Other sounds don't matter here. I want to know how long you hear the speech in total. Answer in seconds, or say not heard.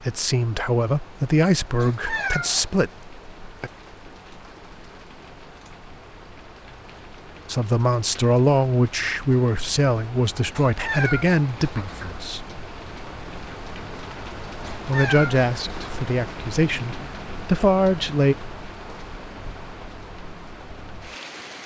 12 s.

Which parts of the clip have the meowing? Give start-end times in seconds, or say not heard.
1.8-2.8, 10.6-12.2, 14.6-15.9.